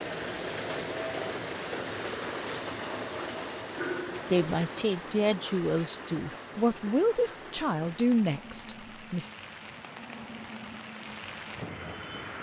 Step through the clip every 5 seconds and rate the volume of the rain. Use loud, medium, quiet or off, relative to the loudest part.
loud, medium, medium.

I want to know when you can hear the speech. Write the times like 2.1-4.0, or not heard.
4.2-9.3.